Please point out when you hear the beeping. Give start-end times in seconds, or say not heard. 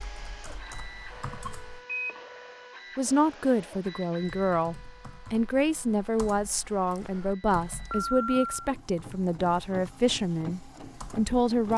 1.1-2.8, 7.0-8.7.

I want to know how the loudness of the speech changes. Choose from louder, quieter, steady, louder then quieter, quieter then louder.
steady.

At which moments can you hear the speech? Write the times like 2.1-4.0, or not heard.
3.0-11.7.